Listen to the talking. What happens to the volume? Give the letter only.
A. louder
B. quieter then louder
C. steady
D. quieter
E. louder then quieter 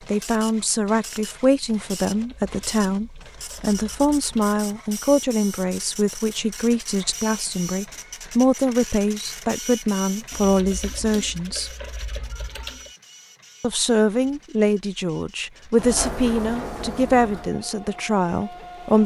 C.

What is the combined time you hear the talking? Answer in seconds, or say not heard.
17 s.